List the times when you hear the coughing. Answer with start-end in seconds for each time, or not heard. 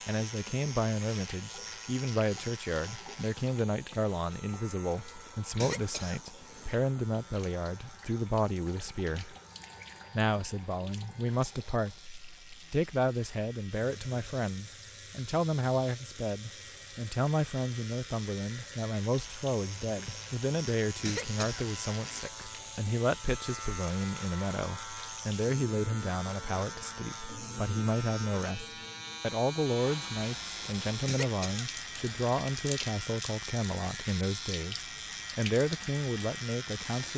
5.6-6.8, 21.1-22.2, 31.1-32.2.